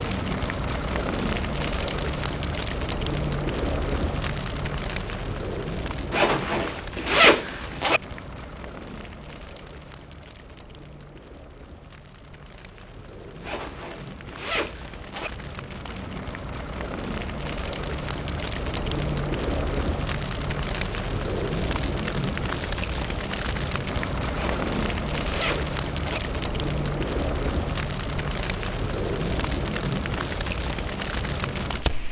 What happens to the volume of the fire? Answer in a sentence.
The loudness of the fire goes down, then up.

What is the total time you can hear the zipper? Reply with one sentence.
The zipper can be heard for 6 seconds in total.